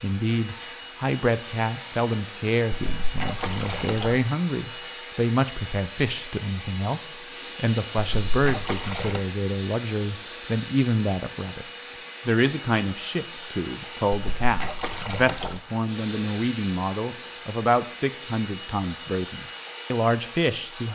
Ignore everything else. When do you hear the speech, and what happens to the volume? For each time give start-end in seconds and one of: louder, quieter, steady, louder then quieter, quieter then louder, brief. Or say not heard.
0.0-20.9 steady.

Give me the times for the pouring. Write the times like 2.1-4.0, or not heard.
2.7-4.2, 8.0-9.2, 14.1-15.6.